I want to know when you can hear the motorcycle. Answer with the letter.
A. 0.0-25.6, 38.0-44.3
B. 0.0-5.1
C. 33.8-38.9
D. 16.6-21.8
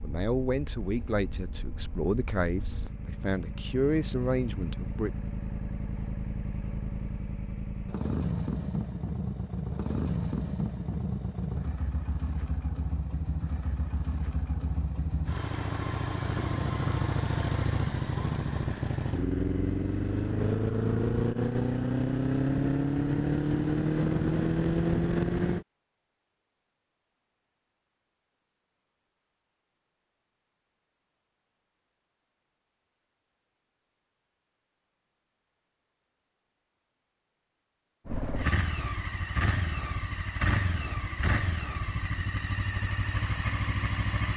A.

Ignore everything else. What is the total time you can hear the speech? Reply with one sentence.
You can hear the speech for 5 seconds altogether.